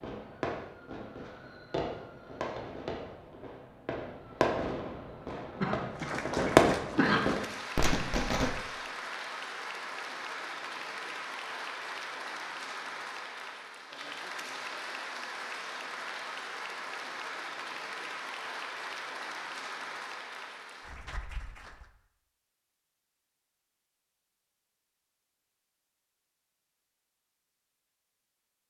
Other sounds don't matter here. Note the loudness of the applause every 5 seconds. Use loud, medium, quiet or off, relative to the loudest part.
off, loud, loud, loud, medium, off.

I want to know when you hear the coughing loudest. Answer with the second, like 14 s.
7 s.